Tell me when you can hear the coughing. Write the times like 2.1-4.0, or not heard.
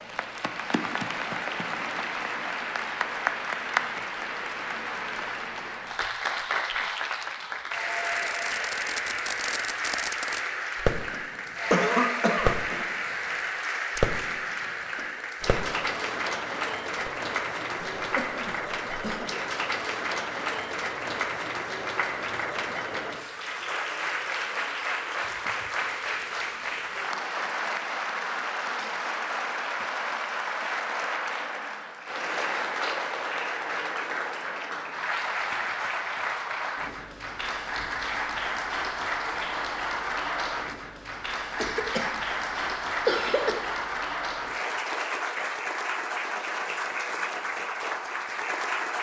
11.7-12.8, 17.8-19.2, 41.6-43.5.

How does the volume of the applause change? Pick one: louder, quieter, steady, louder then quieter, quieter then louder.
steady.